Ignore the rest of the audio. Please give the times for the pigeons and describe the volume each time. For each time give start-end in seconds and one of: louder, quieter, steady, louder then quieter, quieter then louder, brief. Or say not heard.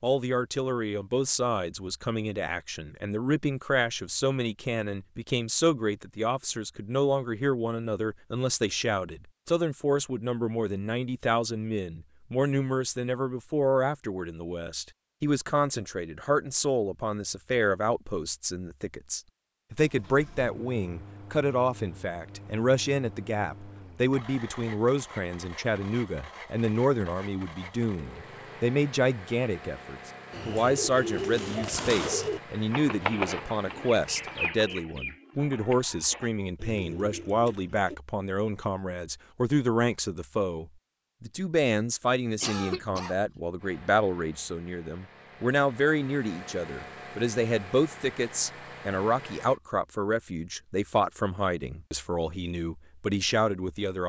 30.3-38.0 quieter.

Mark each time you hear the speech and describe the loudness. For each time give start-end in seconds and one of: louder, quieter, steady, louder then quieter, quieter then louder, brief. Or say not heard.
0.0-54.0 steady.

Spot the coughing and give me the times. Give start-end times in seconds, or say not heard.
42.4-43.1.